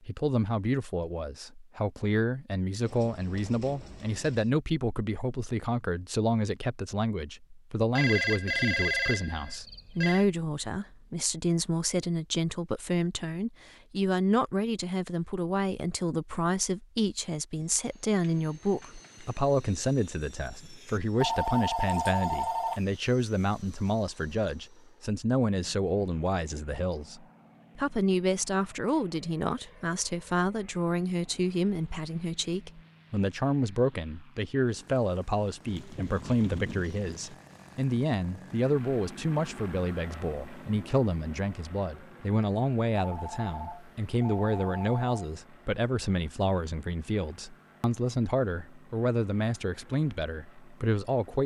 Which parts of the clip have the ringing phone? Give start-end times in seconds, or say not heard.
8.0-10.2, 21.2-22.8, 43.0-45.4.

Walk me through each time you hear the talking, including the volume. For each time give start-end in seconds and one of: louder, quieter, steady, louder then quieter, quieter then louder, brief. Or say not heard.
0.0-51.4 steady.